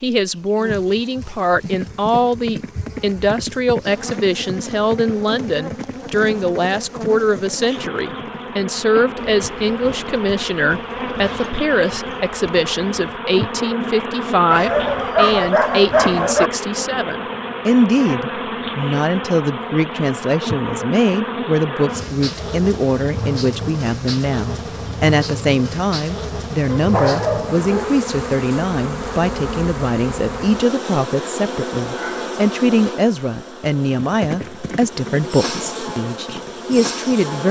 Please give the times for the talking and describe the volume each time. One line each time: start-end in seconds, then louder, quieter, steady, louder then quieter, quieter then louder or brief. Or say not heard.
0.0-37.4 steady.